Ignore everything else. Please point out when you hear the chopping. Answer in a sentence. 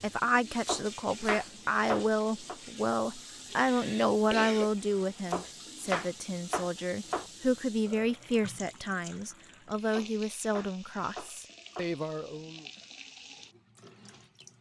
The chopping can be heard from 0.7 to 2.5 s, from 5.3 to 7.2 s and from 9.9 to 11.9 s.